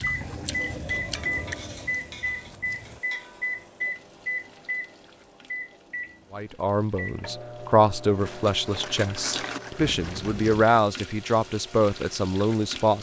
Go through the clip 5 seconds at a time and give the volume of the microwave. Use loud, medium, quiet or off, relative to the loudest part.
loud, medium, quiet.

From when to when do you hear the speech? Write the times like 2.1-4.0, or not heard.
6.3-12.9.